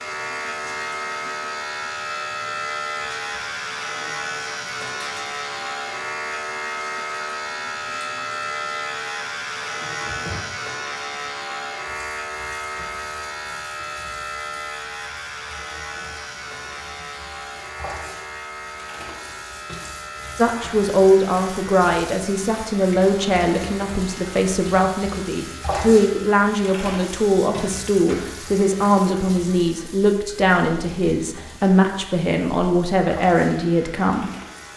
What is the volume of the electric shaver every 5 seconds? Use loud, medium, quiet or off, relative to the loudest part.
loud, loud, loud, medium, medium, quiet, quiet.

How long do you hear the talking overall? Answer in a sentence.
You can hear the talking for 14 seconds altogether.